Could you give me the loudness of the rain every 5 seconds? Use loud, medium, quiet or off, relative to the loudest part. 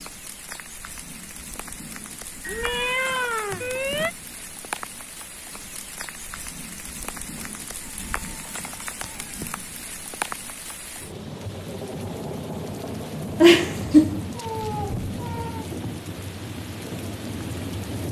medium, medium, loud, loud.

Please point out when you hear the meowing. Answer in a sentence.
You can hear the meowing from 2.5 to 4.2 s, from 7.3 to 9.3 s and from 13.4 to 15.6 s.